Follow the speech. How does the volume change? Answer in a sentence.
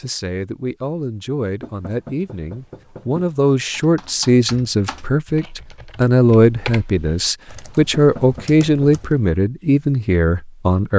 The loudness of the speech goes up.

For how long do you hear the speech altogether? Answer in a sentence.
The speech can be heard for 11 seconds in total.